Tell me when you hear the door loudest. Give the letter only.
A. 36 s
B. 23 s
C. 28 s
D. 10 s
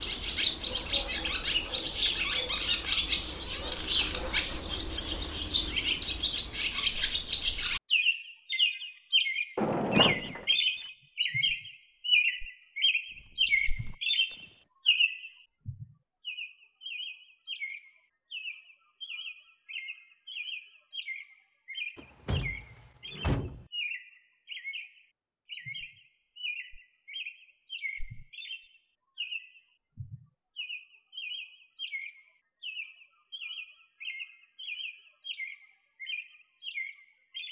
D.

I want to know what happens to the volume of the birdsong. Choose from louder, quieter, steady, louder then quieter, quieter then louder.
quieter.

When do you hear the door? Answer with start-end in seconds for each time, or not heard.
9.6-10.4, 21.9-23.6.